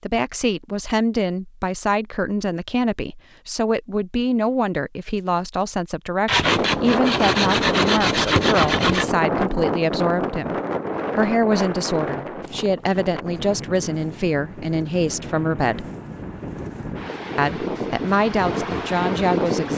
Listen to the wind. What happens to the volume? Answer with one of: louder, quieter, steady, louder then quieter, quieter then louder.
quieter then louder.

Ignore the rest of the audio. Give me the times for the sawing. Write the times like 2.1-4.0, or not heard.
6.2-9.1.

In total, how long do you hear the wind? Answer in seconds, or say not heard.
13 s.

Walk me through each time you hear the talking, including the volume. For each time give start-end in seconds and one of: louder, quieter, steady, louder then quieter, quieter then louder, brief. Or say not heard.
0.0-10.6 steady
11.2-15.8 steady
17.4-19.7 brief.